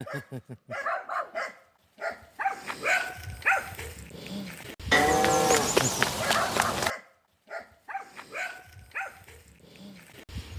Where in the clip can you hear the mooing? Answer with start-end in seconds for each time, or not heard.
4.9-6.9.